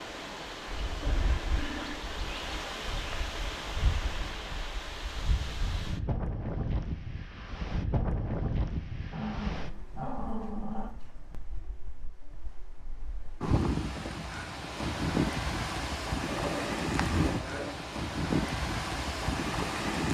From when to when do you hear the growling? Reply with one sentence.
The growling can be heard from 1.0 to 2.0 s, from 9.1 to 10.8 s and from 16.2 to 17.8 s.